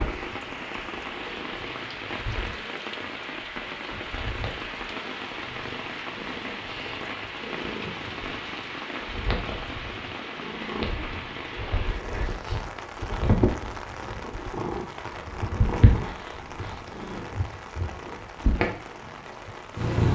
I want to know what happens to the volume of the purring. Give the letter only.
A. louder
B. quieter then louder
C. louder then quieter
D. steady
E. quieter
A.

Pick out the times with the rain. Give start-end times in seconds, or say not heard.
0.0-20.1.